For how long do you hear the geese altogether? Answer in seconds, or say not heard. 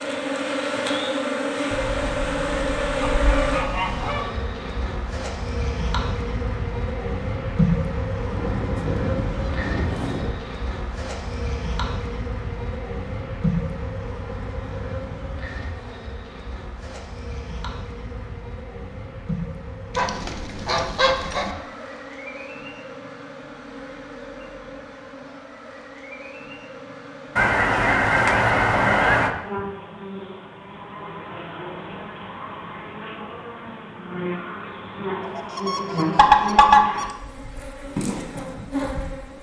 10 s.